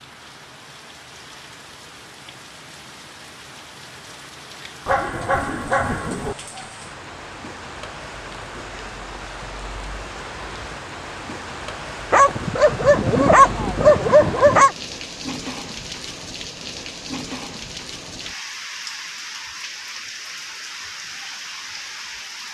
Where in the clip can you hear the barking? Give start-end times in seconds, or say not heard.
4.8-6.3, 12.1-14.8.